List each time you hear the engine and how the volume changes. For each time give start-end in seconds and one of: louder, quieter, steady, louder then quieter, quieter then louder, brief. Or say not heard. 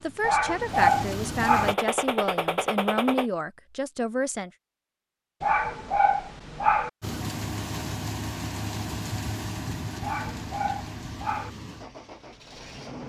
0.0-1.8 brief
7.0-13.0 quieter.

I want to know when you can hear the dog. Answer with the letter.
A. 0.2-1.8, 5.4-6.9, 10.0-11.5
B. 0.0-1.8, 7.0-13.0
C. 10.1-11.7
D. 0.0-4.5
A.